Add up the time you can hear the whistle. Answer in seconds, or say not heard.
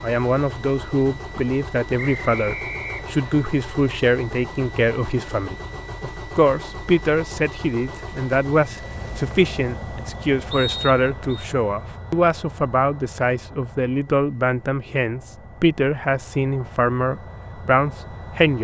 2 s.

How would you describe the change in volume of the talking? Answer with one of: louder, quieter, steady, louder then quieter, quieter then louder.
steady.